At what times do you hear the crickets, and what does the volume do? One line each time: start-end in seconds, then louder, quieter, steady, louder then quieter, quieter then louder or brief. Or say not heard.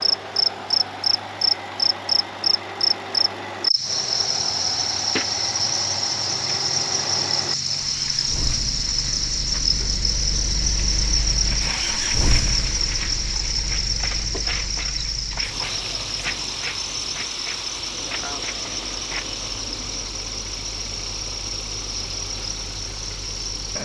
0.0-23.7 quieter.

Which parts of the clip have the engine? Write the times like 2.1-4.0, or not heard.
0.0-23.7.